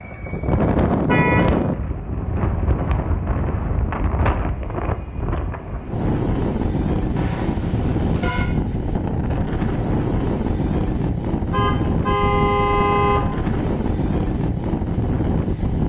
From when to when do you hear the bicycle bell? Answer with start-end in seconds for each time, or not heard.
not heard.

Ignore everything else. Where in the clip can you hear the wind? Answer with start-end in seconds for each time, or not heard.
0.0-15.8.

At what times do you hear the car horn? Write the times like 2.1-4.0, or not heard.
1.1-1.6, 7.2-8.4, 11.5-13.2.